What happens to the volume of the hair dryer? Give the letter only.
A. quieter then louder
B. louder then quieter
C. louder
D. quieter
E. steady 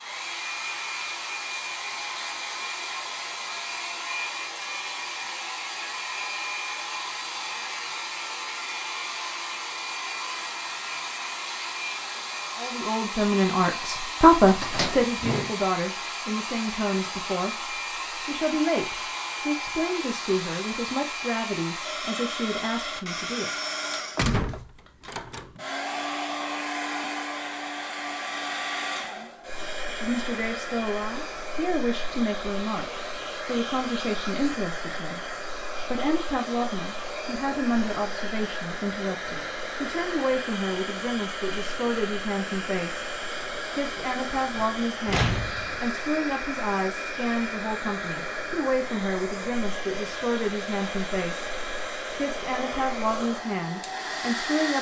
E.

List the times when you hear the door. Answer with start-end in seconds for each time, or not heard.
14.4-15.6, 24.1-25.5, 44.5-45.8.